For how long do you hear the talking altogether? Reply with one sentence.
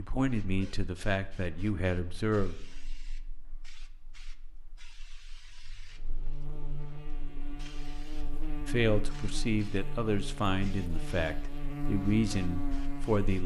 You can hear the talking for 7 seconds altogether.